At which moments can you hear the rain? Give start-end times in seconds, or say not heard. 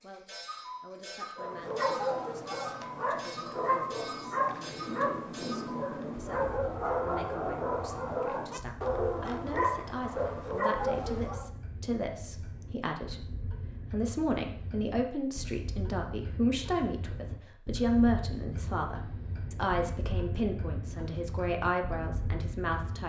not heard.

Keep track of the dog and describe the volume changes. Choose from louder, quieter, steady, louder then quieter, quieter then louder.
steady.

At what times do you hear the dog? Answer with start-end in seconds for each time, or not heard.
1.4-11.5.